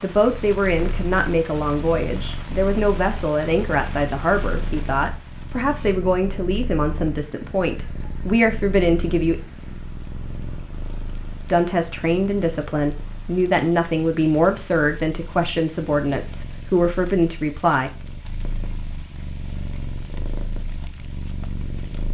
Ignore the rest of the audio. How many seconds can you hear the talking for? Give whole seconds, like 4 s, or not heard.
16 s.